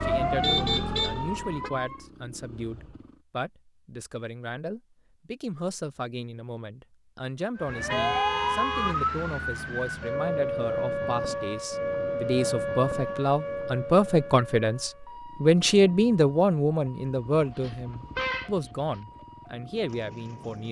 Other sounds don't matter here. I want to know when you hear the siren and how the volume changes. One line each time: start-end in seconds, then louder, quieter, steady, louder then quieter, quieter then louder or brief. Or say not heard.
0.0-2.1 brief
7.5-20.6 quieter.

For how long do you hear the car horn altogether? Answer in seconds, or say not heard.
4 s.